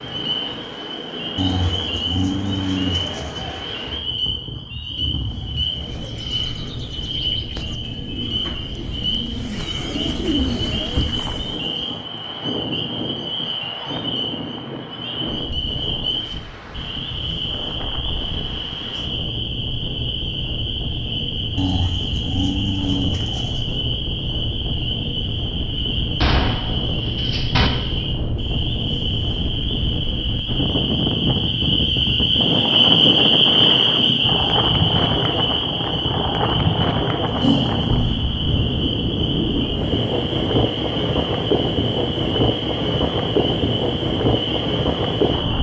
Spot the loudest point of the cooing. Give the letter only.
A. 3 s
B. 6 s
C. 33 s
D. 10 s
D.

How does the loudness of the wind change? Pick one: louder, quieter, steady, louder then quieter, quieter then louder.
louder.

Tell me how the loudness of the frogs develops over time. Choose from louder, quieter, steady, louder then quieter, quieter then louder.
louder then quieter.